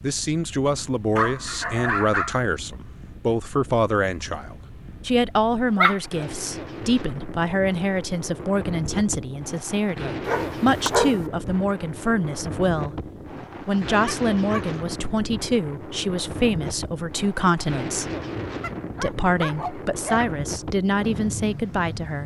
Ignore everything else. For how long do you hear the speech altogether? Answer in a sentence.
The speech can be heard for 21 seconds in total.